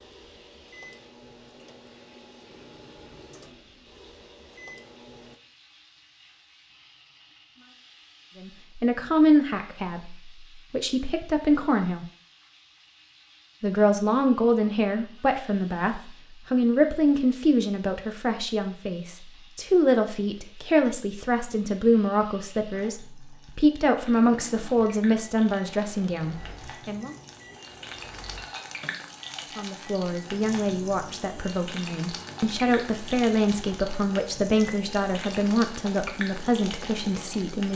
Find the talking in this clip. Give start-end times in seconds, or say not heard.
8.3-12.1, 13.6-27.1, 29.6-37.7.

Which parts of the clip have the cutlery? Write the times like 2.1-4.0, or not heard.
not heard.